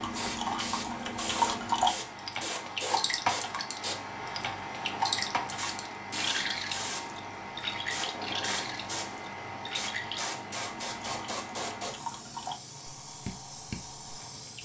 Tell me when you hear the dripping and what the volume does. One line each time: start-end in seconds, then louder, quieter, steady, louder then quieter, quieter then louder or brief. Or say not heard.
0.0-14.5 quieter.